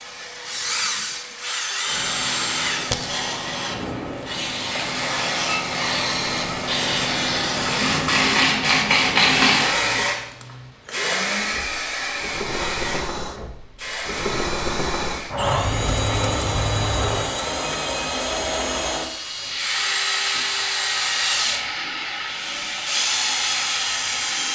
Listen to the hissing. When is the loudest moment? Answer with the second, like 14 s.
9 s.